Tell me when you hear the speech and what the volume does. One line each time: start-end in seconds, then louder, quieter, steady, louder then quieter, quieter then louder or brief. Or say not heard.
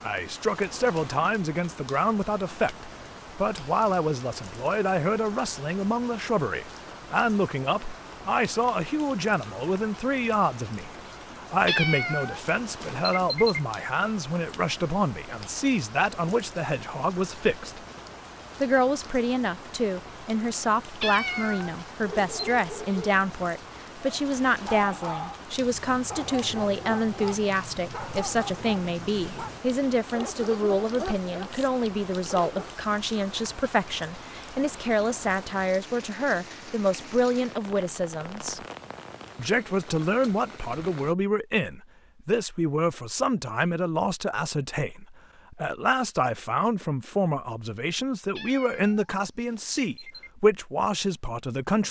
0.0-17.9 steady
18.6-38.6 steady
39.4-51.8 steady.